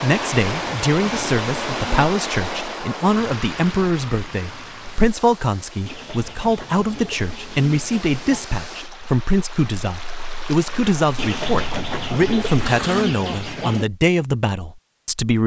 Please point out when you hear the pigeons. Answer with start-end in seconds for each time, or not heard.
0.1-2.1, 5.8-8.4, 11.2-13.8.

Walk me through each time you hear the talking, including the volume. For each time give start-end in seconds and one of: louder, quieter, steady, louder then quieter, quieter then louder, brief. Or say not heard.
0.0-15.4 steady.